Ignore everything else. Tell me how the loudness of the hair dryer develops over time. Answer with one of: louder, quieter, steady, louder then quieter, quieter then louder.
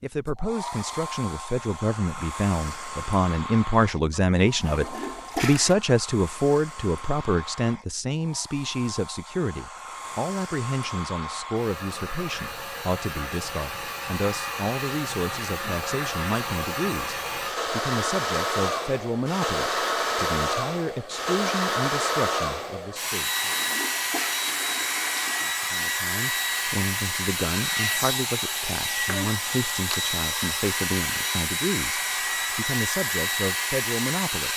louder.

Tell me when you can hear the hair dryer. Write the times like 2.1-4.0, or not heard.
0.0-34.5.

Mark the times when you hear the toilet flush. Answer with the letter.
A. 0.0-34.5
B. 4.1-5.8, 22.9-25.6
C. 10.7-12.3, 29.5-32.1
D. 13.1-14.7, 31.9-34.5
B.